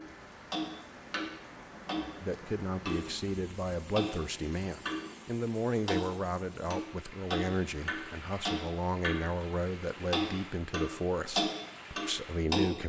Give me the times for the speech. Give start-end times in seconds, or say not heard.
2.2-12.8.